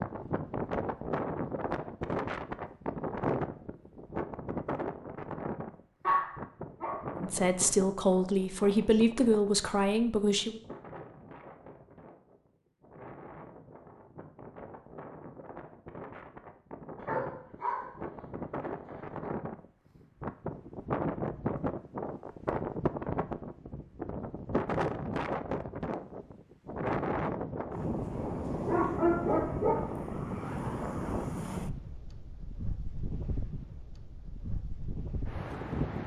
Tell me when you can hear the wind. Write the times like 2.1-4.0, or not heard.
0.0-36.0.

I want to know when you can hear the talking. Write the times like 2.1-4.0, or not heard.
7.2-10.6.